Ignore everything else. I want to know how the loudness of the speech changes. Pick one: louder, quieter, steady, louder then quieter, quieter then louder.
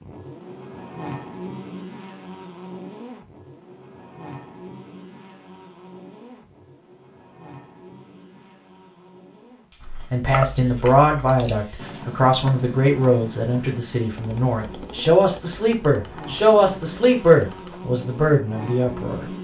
steady.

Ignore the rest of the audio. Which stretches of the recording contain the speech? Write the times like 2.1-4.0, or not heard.
10.1-19.3.